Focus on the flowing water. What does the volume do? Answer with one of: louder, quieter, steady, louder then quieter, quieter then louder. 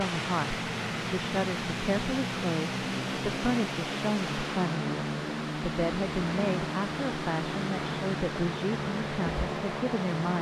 steady.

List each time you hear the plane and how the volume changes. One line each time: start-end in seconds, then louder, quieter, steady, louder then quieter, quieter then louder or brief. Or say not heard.
0.0-10.3 steady.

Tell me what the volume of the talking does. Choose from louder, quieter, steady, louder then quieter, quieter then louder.
steady.